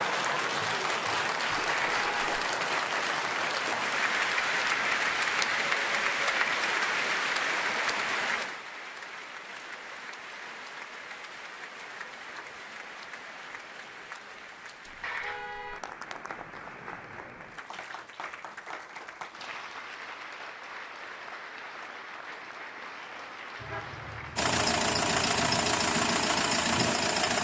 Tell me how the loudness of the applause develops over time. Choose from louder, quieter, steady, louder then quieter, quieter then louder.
quieter.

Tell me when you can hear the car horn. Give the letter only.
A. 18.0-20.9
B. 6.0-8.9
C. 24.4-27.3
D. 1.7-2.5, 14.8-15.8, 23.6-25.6
D.